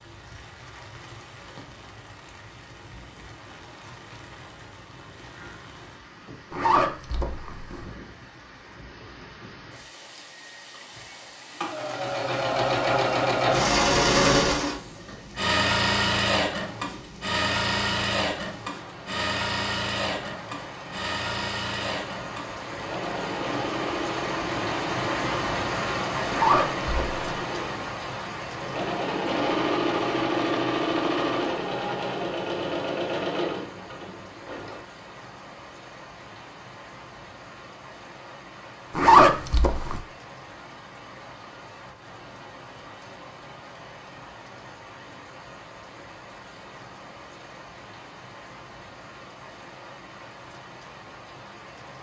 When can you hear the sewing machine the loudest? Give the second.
14 s.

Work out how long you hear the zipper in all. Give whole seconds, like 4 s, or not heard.
3 s.